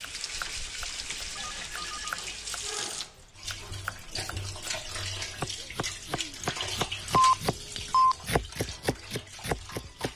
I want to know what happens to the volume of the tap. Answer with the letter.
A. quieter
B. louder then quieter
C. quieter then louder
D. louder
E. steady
A.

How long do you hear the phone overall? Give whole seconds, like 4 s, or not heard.
2 s.